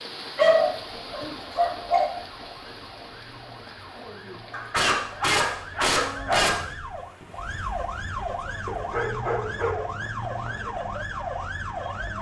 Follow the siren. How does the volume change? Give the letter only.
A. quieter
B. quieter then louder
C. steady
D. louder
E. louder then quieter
D.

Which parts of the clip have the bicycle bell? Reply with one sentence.
You can't hear the bicycle bell here.